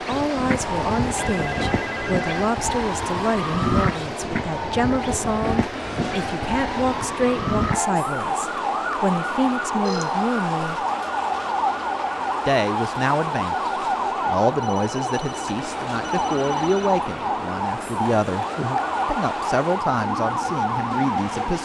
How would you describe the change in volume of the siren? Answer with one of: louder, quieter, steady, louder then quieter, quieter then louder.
steady.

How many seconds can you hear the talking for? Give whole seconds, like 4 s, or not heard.
19 s.